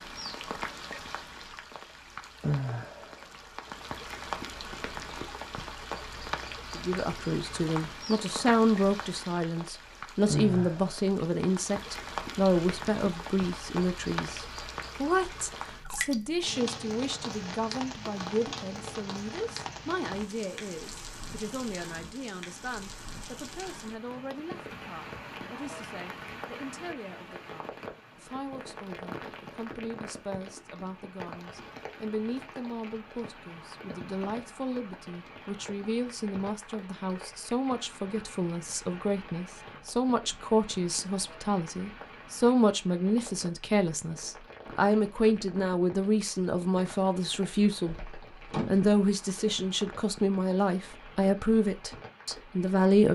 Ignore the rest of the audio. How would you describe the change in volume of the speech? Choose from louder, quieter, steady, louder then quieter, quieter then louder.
quieter then louder.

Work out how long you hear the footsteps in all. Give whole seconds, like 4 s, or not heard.
not heard.